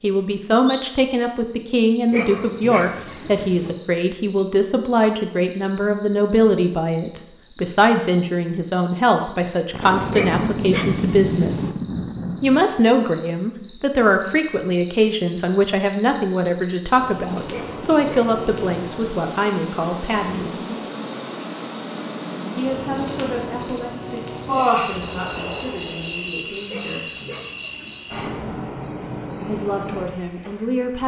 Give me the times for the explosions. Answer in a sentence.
You can hear the explosions from 9.7 to 12.7 s and from 24.9 to 26.4 s.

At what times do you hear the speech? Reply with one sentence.
The speech can be heard from 0.0 to 11.7 s, from 12.4 to 20.6 s, from 22.6 to 27.1 s and from 29.4 to 31.0 s.